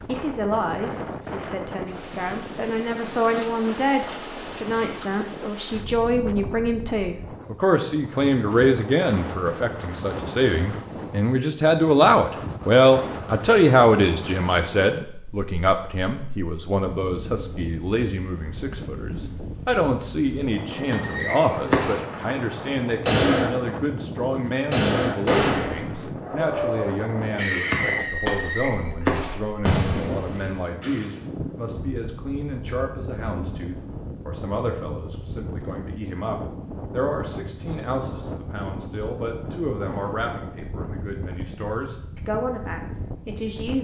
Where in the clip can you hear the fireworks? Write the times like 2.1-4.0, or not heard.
20.8-22.2, 23.1-23.5, 24.7-31.1.